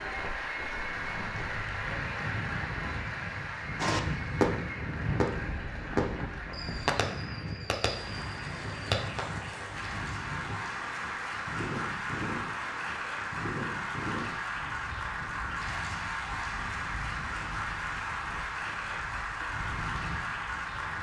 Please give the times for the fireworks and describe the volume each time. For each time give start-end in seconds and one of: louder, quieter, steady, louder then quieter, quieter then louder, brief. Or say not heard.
3.8-9.2 quieter.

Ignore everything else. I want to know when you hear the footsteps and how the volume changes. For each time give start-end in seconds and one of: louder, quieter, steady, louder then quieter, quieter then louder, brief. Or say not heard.
not heard.